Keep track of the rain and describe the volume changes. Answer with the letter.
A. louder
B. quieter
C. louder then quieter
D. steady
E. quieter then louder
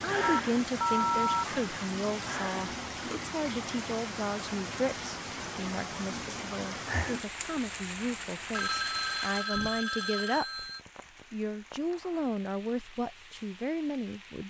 B.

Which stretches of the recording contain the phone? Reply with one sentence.
You can hear the phone from 0.2 to 1.4 s and from 8.5 to 10.8 s.